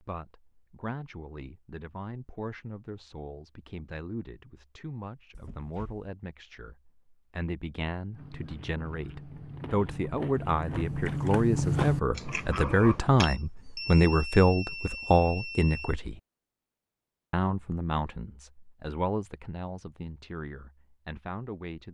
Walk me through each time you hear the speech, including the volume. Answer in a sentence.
The speech can be heard from 0.0 to 16.2 s, getting louder; and from 17.3 to 21.8 s, getting quieter.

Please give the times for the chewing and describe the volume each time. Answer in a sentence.
You can hear the chewing from 8.1 to 13.3 s, getting louder then quieter.